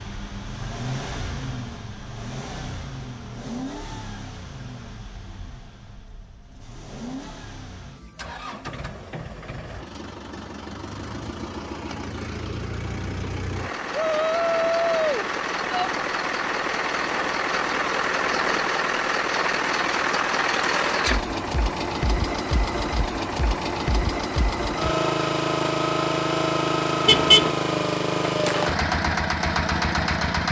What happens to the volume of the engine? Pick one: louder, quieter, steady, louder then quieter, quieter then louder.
louder.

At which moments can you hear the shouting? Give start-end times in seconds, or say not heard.
13.9-15.9.